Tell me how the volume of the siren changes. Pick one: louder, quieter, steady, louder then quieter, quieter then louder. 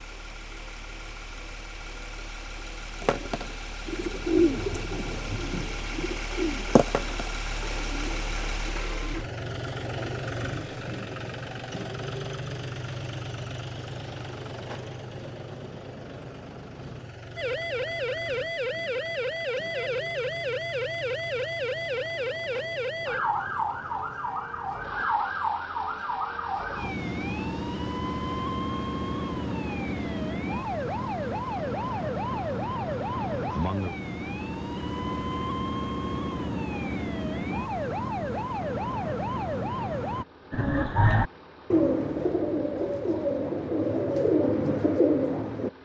steady.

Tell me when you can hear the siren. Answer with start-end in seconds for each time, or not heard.
17.4-40.2.